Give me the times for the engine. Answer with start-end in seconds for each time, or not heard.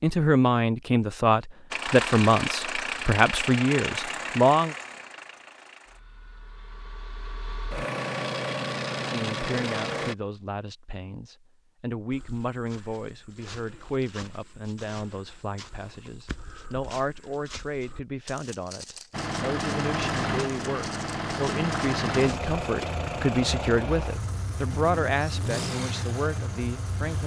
1.7-10.2, 19.1-27.2.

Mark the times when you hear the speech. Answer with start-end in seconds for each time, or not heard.
0.0-4.8, 9.1-27.2.